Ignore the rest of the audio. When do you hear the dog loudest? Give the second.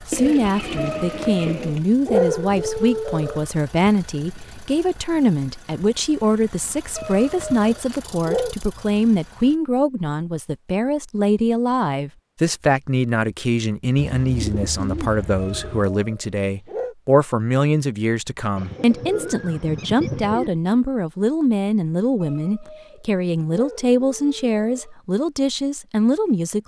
2 s.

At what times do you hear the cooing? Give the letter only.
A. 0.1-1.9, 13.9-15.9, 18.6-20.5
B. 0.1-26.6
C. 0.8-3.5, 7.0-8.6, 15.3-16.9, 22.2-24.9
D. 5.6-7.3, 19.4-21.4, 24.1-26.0
A.